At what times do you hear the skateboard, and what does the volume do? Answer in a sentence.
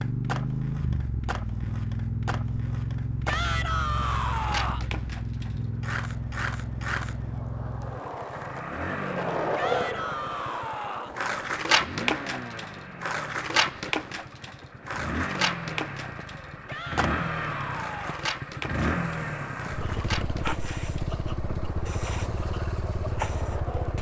You can hear the skateboard from 0.0 to 23.9 s, getting louder then quieter.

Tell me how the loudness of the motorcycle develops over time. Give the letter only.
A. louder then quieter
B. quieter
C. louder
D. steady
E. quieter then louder
E.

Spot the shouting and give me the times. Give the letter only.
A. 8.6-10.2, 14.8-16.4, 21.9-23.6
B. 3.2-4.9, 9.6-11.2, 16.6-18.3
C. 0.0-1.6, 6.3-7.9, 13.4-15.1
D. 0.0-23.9
B.